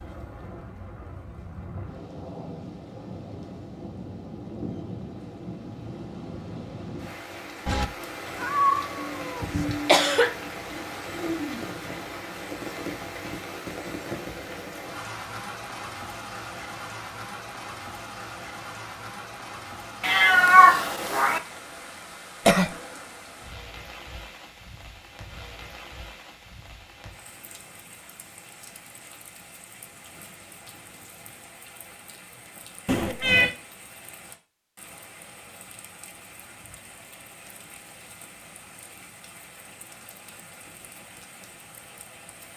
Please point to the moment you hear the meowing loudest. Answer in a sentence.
The volume of the meowing peaks at 21 seconds.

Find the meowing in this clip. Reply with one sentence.
The meowing can be heard from 7.7 to 9.7 s, from 20.0 to 21.4 s and from 32.9 to 33.5 s.